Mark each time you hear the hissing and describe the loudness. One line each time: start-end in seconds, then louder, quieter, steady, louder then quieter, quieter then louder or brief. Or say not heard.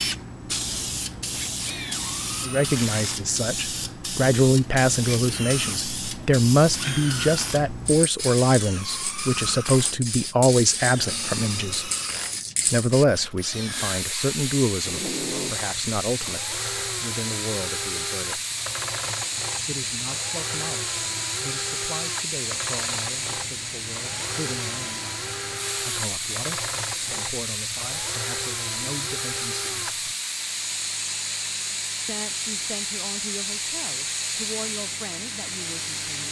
0.0-36.2 steady.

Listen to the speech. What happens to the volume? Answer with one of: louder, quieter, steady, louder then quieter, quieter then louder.
quieter.